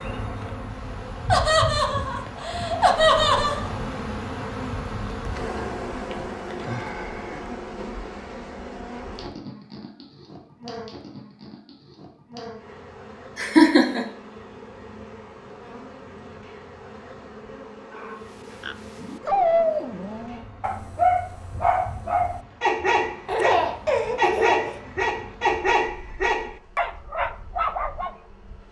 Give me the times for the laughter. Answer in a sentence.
The laughter can be heard from 1.3 to 3.6 s, from 13.3 to 14.1 s and from 23.2 to 24.8 s.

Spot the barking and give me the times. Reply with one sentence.
You can hear the barking from 17.9 to 28.1 s.